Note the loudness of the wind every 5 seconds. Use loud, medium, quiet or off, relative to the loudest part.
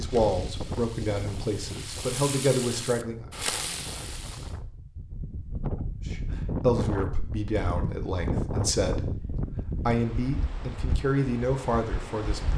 medium, loud, medium.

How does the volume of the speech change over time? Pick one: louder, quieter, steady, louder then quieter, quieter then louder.
steady.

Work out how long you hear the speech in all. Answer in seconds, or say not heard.
10 s.